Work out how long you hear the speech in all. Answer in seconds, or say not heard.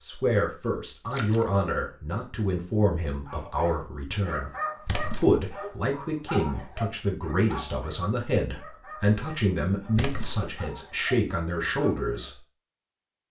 12 s.